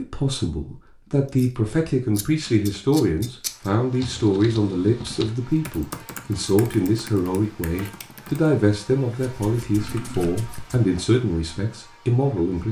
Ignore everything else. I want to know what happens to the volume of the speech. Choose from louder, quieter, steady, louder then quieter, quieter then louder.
steady.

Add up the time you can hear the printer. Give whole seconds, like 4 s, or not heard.
not heard.